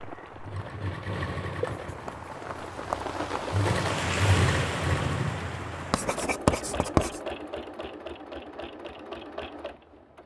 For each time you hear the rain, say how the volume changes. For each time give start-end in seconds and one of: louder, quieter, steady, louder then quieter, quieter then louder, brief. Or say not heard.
0.0-6.3 louder then quieter.